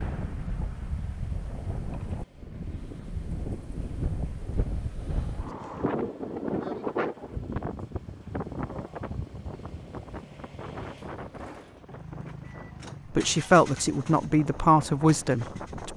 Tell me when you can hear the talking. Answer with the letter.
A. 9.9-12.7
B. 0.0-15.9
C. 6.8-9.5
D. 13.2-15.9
D.